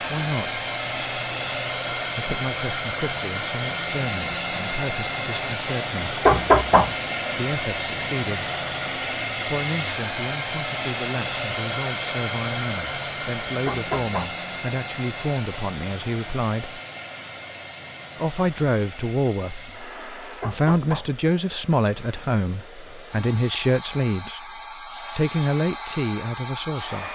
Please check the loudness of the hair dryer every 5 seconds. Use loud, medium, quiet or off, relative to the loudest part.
loud, loud, loud, medium, quiet, medium.